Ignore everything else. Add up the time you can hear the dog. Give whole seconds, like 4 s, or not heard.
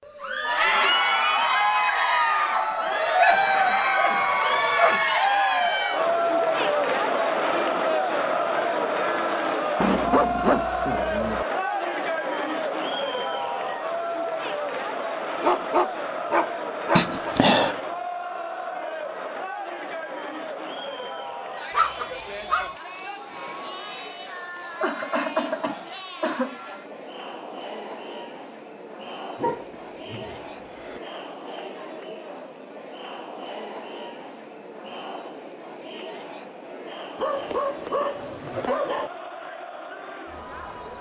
10 s.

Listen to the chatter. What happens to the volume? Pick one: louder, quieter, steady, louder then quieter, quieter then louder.
quieter.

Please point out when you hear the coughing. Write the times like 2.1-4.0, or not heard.
16.9-17.8, 24.8-26.6.